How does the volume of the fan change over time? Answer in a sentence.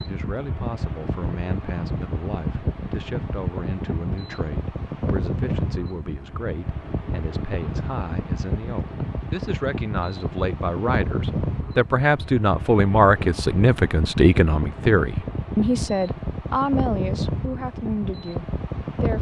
The volume of the fan stays about the same.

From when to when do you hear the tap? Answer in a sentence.
You can't hear the tap here.